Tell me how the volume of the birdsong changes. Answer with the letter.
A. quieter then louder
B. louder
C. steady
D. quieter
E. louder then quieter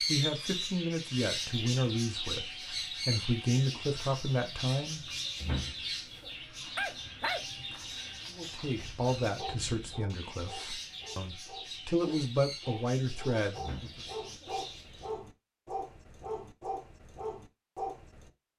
D.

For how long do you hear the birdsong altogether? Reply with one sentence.
You can hear the birdsong for 15 seconds altogether.